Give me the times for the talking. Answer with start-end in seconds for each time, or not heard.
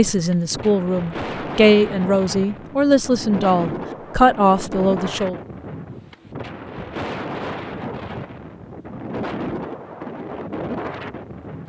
0.0-5.3.